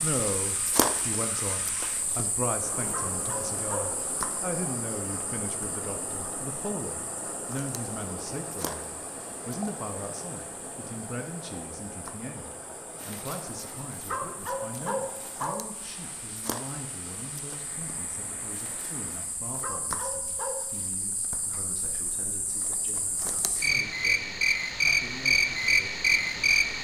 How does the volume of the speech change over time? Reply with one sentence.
The loudness of the speech goes down.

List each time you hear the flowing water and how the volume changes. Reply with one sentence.
The flowing water can be heard from 0.0 to 19.4 s, getting quieter.